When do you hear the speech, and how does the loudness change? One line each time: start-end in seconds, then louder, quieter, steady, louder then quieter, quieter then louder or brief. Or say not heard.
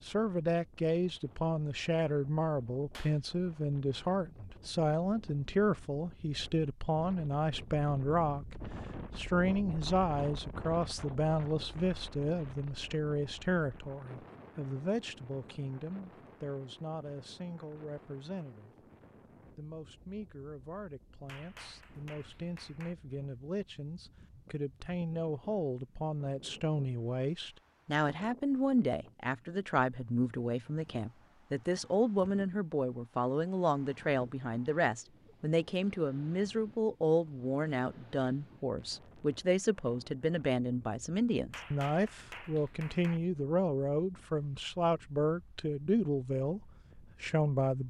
0.1-18.9 quieter
19.6-47.8 louder.